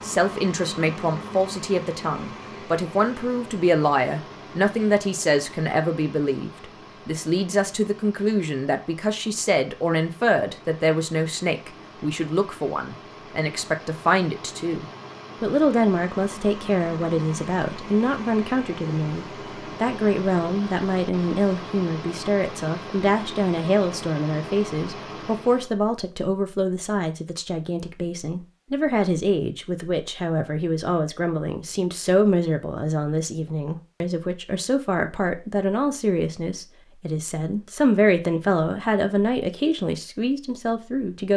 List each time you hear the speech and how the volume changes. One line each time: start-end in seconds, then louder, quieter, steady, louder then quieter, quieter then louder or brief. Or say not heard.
0.0-41.3 steady.